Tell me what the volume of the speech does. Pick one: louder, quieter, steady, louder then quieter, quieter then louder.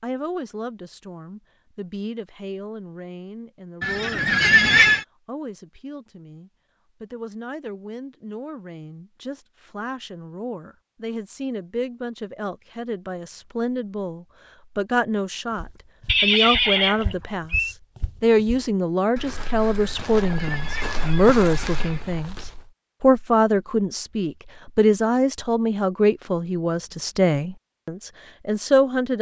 louder.